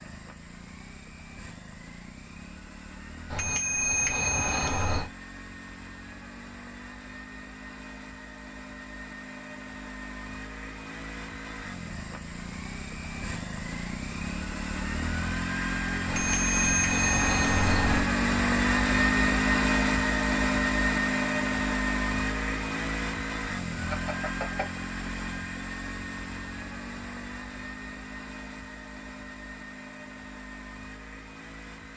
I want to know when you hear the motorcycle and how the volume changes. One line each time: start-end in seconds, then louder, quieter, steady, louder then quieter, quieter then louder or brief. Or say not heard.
0.0-31.9 louder then quieter.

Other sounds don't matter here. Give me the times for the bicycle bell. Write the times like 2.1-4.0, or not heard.
3.3-5.1, 16.1-18.0, 23.9-24.7.